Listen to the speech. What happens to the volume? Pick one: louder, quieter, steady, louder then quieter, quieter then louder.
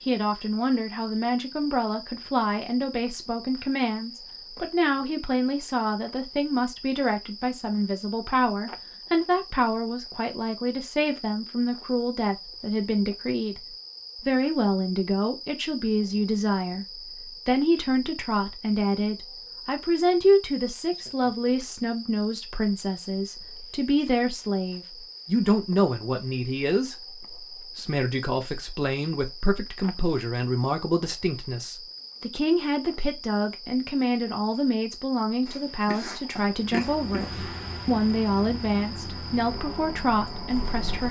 steady.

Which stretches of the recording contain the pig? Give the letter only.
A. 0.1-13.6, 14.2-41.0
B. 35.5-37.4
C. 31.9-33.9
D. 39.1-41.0
B.